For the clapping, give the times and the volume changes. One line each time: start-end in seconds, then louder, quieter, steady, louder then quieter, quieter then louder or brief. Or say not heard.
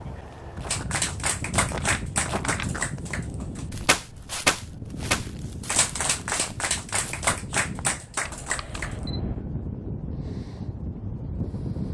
0.7-8.9 louder then quieter.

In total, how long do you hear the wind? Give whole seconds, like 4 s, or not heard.
12 s.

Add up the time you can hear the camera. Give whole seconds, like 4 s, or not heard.
2 s.